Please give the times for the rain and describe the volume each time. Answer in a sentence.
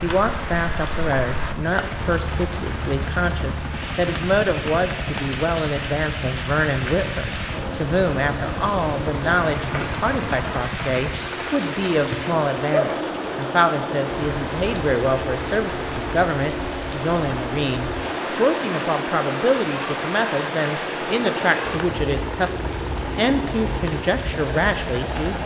You can hear the rain from 0.0 to 25.4 s, at a steady volume.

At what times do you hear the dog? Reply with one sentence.
You can't hear the dog here.